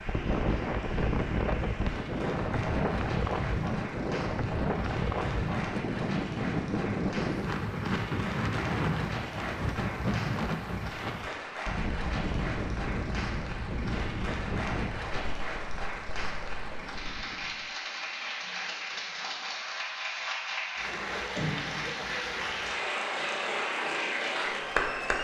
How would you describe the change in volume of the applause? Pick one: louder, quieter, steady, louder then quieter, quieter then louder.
louder.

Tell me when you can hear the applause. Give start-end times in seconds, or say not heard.
0.0-25.1.